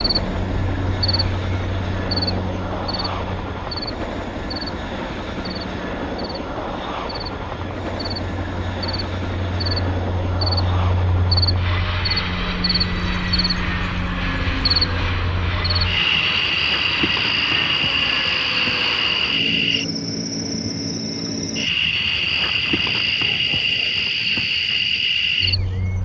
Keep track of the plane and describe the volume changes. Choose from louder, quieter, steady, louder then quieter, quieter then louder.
steady.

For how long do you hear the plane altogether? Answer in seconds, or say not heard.
22 s.